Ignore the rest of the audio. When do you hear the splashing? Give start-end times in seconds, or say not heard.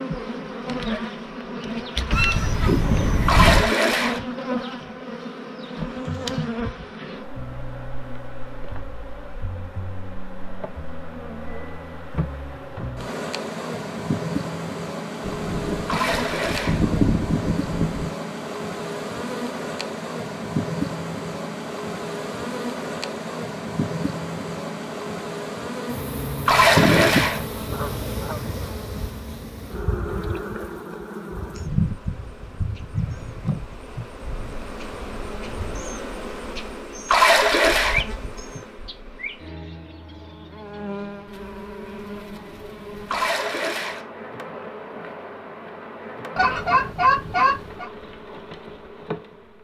3.2-4.2, 15.8-16.8, 26.4-27.4, 37.0-38.0, 43.0-44.0.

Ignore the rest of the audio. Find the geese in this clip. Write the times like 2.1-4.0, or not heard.
2.1-3.7, 15.2-18.1, 26.8-28.6, 46.4-47.9.